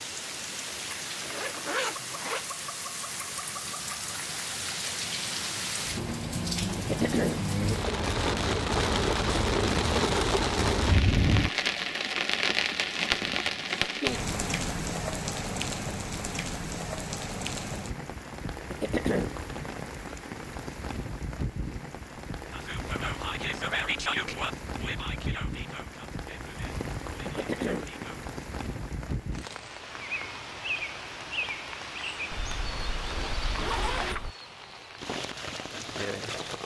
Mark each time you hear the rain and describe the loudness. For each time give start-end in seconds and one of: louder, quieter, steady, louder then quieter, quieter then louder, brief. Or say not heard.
0.0-36.6 louder then quieter.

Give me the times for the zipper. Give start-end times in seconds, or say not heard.
1.2-2.6, 12.9-13.9, 32.3-34.4.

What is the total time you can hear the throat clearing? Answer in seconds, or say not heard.
2 s.